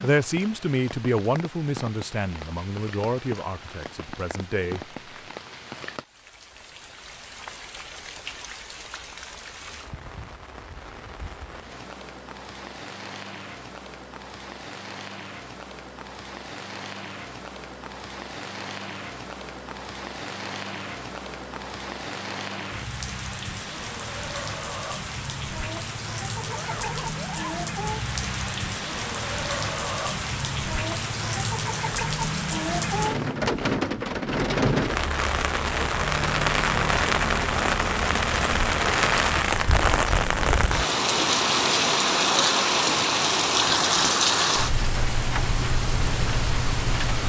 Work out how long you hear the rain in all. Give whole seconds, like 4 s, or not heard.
47 s.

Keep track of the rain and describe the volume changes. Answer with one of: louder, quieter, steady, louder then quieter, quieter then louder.
louder.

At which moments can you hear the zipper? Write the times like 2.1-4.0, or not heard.
26.4-27.6.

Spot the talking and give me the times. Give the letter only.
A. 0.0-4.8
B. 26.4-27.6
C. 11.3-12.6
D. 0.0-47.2
A.